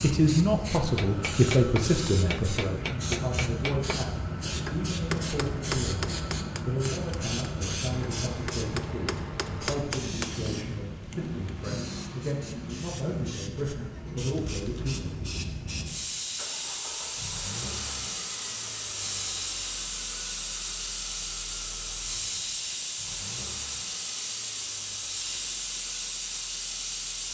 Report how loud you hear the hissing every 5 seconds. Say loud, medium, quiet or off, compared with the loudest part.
loud, loud, medium, loud, loud, loud.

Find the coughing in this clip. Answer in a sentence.
You can't hear the coughing here.